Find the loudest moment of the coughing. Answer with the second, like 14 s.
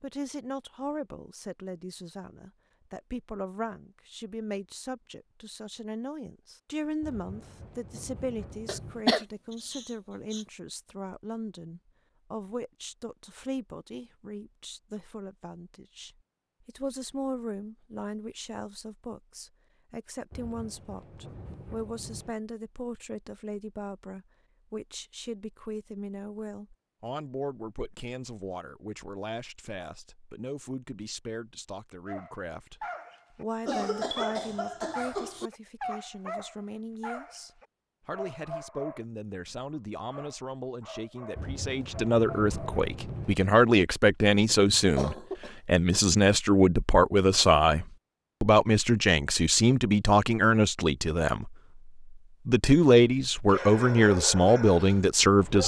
9 s.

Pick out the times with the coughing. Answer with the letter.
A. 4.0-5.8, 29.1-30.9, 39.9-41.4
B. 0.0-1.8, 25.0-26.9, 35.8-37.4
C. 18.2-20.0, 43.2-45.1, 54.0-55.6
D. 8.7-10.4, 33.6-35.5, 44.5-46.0
D.